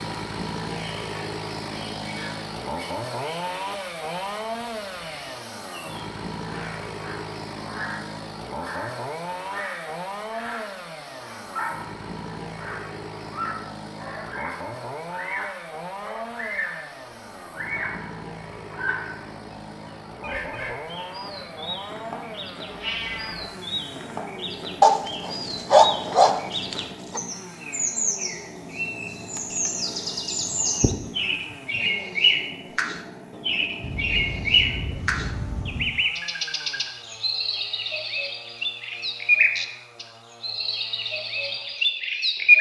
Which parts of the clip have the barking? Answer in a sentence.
You can hear the barking from 24.8 to 27.2 s.